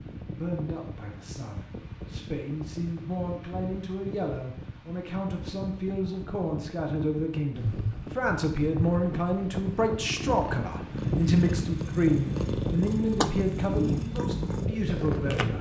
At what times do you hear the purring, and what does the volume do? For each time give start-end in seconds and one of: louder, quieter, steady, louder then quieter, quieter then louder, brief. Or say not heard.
7.5-15.5 louder.